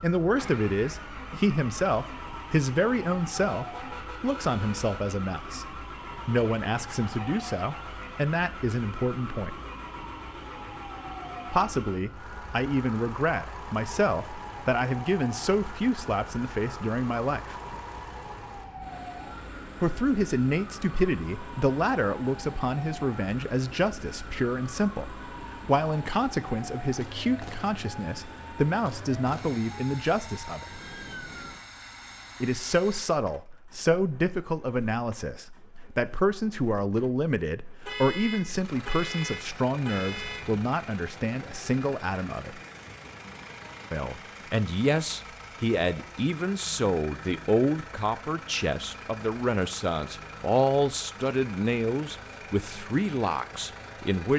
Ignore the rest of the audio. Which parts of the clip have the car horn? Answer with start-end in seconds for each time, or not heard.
3.5-5.0, 37.9-40.5.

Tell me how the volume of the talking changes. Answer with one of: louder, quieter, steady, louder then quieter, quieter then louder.
steady.